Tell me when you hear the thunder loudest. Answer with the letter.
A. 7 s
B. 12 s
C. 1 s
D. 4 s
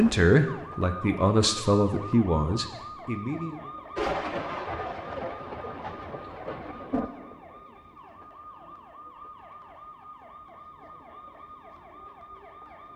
D.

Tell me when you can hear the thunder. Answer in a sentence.
The thunder can be heard from 4.0 to 7.1 s.